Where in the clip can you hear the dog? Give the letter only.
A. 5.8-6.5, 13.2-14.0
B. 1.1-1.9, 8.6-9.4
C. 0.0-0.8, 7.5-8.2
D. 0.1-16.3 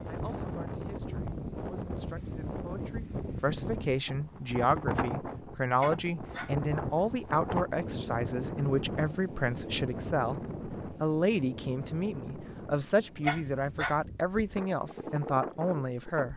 A.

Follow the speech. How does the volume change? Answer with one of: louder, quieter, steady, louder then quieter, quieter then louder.
louder.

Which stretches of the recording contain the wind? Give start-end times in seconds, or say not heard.
0.0-16.3.